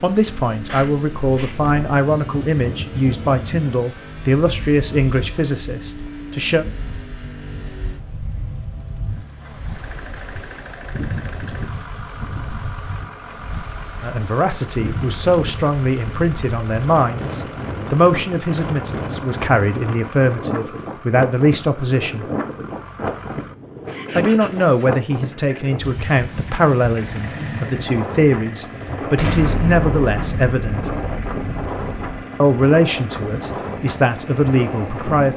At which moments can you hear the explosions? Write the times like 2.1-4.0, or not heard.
0.7-1.6, 29.1-32.0.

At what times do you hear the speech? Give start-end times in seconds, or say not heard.
0.0-6.7, 14.0-22.2, 24.1-30.9, 32.4-35.3.